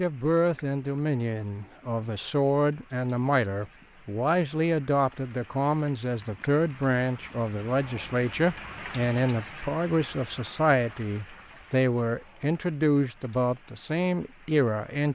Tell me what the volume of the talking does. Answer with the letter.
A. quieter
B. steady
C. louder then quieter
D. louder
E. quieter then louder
B.